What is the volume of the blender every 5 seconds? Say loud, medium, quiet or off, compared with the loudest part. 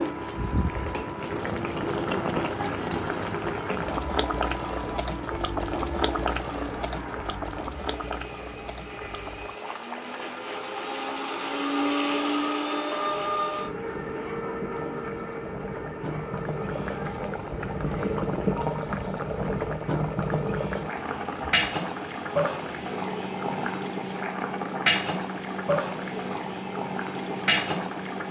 medium, medium, loud, medium, medium, medium.